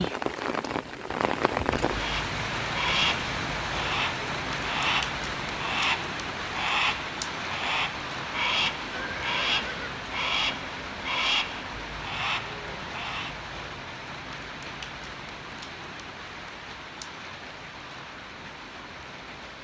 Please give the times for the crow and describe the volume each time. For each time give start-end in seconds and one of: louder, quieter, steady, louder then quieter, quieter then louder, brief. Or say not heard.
1.9-13.3 steady.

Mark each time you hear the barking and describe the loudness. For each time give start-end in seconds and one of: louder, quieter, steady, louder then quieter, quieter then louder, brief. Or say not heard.
not heard.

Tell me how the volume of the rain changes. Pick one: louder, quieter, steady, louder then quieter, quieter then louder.
quieter.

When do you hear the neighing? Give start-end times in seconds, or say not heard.
8.9-10.0.